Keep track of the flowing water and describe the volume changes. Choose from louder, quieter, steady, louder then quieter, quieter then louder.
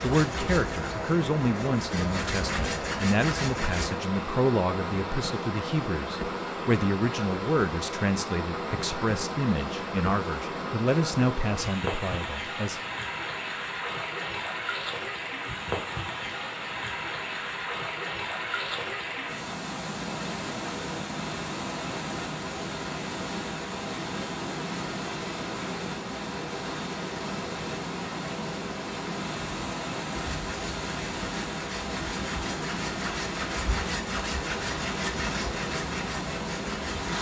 steady.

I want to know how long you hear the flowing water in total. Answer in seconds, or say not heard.
37 s.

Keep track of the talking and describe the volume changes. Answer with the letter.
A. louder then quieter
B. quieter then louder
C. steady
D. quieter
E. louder
C.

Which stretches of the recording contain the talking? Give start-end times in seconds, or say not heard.
0.0-12.8.